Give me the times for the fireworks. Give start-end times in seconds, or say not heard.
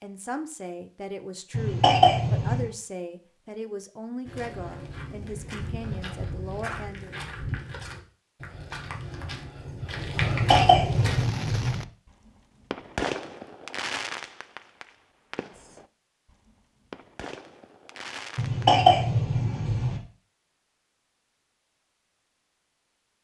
10.8-18.8.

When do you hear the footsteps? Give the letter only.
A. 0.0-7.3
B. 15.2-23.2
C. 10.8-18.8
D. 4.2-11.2
D.